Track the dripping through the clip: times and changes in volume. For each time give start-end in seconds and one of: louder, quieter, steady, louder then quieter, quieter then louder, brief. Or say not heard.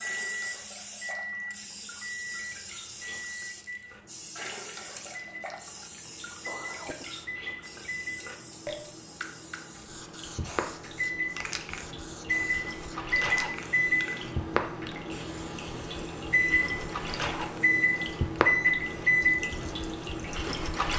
0.0-20.9 louder.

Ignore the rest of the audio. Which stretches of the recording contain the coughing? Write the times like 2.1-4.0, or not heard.
6.5-7.1.